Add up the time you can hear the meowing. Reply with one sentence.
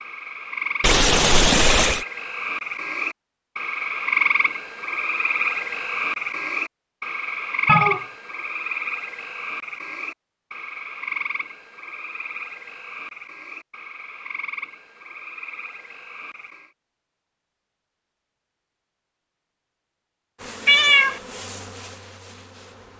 You can hear the meowing for 2 seconds altogether.